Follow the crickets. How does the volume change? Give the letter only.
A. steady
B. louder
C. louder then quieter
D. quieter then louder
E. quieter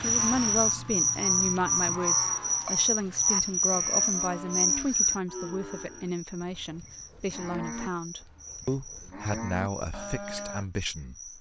E.